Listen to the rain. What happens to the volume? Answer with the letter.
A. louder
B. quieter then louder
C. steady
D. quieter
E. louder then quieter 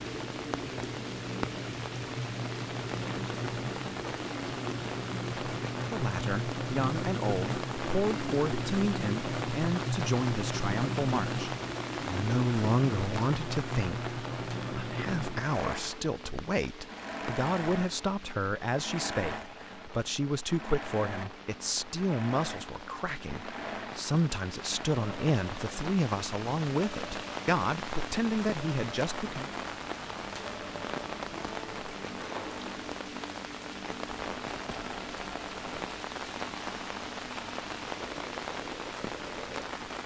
B.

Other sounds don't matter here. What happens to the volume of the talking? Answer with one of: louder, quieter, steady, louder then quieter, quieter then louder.
steady.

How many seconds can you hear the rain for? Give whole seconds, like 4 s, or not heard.
40 s.